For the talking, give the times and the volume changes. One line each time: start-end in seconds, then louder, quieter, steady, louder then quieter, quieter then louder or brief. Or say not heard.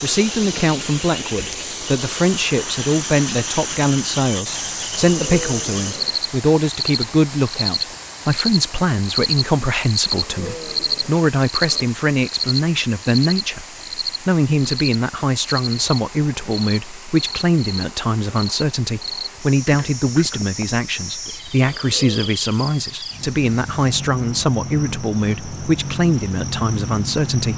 0.0-27.5 steady.